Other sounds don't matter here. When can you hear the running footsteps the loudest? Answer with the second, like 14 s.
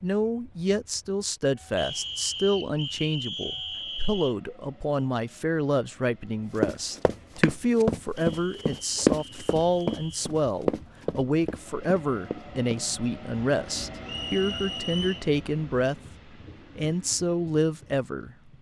9 s.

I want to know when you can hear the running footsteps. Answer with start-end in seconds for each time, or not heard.
6.5-12.8.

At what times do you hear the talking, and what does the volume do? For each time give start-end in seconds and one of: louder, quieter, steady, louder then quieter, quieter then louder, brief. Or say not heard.
0.0-16.0 steady
16.8-18.5 brief.